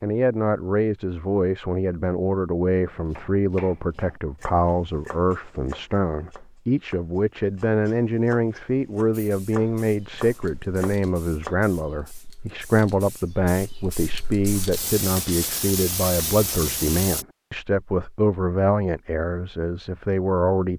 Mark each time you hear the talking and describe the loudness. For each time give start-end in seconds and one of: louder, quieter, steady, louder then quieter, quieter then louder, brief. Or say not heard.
0.0-20.7 steady.